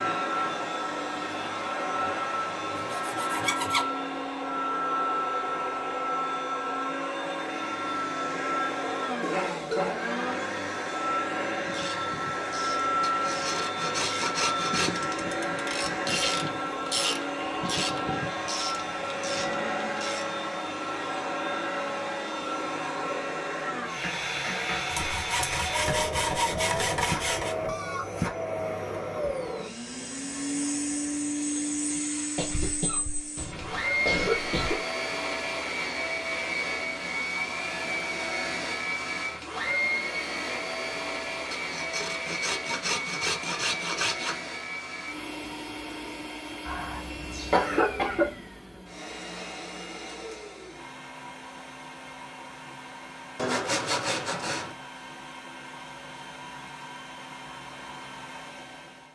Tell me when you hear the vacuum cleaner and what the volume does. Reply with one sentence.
The vacuum cleaner can be heard from 0.0 to 59.0 s, getting quieter.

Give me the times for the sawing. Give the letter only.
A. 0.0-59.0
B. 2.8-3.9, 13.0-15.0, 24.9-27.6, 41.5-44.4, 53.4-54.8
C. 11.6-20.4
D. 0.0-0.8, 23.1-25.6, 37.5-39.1
B.